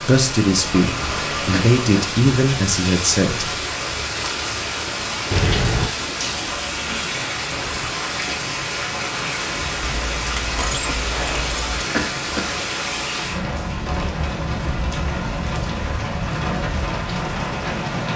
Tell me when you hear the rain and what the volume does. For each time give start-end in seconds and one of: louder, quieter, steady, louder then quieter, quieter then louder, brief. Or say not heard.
0.0-18.1 steady.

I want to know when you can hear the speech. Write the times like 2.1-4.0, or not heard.
0.0-3.5.